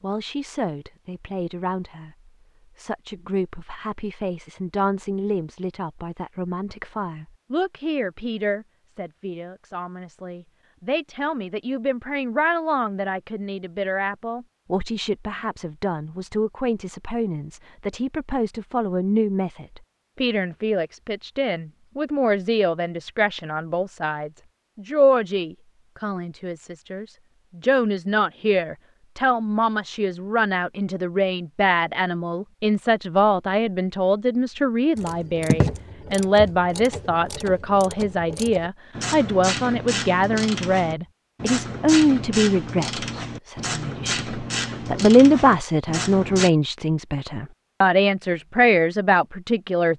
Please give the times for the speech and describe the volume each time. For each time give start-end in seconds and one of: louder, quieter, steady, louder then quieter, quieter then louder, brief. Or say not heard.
0.0-49.9 louder.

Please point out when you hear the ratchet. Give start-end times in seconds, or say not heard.
35.0-46.5.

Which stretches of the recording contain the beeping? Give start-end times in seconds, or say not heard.
not heard.